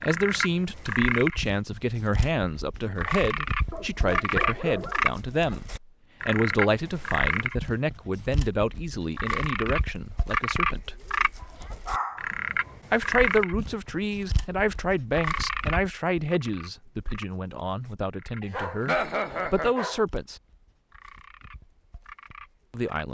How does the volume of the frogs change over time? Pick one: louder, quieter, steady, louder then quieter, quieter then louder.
quieter.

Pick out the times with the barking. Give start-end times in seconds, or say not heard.
3.7-5.1, 11.4-12.8, 18.4-20.1.